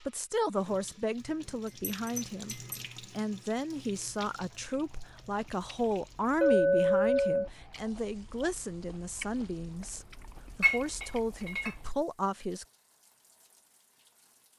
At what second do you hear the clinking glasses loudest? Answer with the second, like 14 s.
7 s.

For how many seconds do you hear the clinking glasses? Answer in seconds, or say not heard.
3 s.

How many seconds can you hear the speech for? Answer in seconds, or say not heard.
13 s.